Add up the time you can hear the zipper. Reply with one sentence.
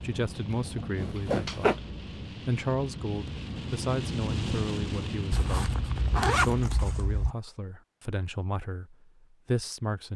The zipper can be heard for 3 seconds in total.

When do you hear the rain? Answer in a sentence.
The rain can be heard from 0.0 to 6.7 s.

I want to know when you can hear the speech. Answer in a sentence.
You can hear the speech from 0.0 to 10.1 s.